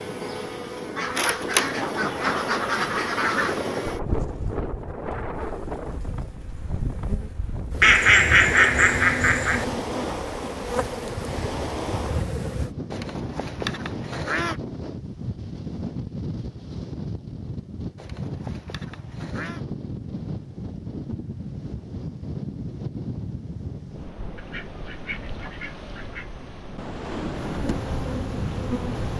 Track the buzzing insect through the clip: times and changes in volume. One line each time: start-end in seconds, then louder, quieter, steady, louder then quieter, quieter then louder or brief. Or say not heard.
0.0-12.7 quieter then louder
27.4-29.1 brief.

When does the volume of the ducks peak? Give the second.
8 s.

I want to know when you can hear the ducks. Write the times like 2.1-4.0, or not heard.
0.9-3.6, 7.8-9.7, 12.9-14.6, 17.9-19.6, 24.4-26.3.